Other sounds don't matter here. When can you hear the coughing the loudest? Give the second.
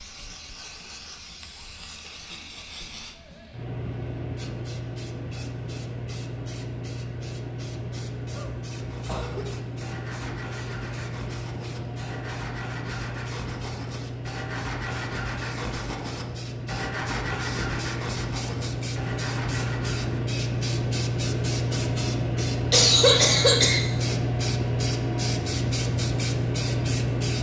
23 s.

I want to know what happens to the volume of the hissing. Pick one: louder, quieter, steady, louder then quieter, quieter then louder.
louder.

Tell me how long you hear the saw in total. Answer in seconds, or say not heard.
12 s.